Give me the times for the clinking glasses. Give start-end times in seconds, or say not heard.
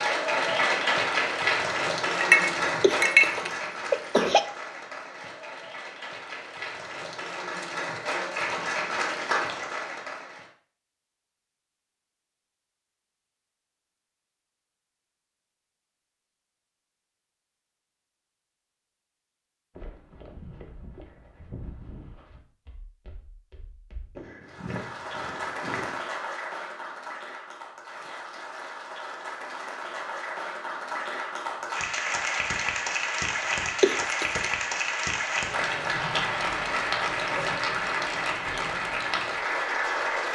2.2-3.2.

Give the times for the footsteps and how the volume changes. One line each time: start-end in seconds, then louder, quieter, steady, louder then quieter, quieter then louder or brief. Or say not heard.
19.8-25.9 quieter then louder.